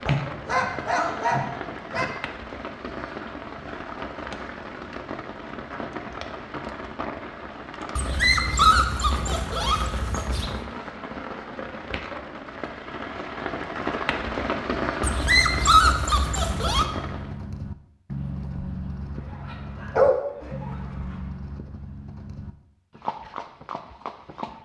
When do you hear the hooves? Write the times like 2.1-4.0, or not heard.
16.4-24.5.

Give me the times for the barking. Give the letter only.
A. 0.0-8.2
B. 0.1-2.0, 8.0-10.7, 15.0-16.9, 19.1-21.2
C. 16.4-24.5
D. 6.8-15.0
B.